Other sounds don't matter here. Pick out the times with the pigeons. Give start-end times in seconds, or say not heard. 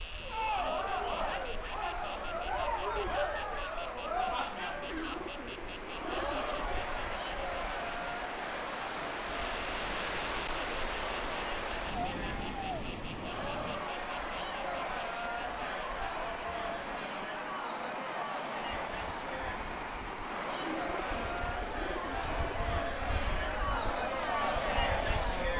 4.8-6.8, 20.5-22.4.